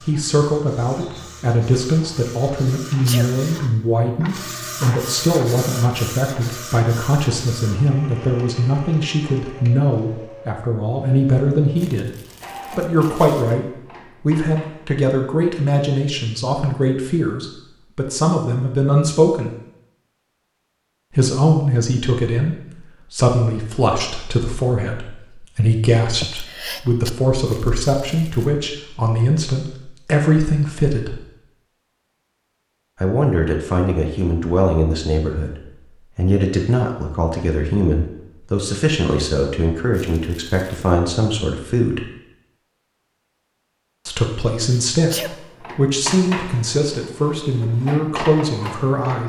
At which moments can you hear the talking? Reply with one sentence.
You can hear the talking from 0.0 to 19.5 s, from 21.1 to 31.2 s, from 33.0 to 35.5 s, from 36.1 to 42.0 s and from 44.0 to 49.2 s.